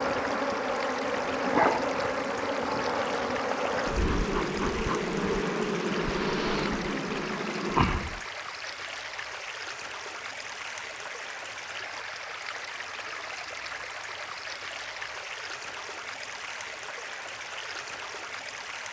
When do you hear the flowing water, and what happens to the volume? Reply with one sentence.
You can hear the flowing water from 0.0 to 18.8 s, at a steady volume.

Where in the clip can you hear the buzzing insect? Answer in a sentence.
The buzzing insect can be heard from 0.0 to 8.2 s.